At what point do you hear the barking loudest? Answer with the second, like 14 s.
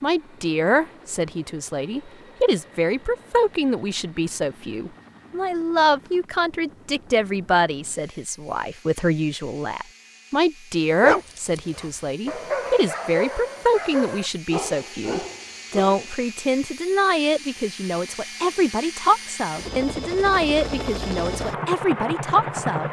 11 s.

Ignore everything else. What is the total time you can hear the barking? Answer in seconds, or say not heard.
5 s.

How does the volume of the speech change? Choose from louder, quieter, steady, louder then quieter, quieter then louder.
steady.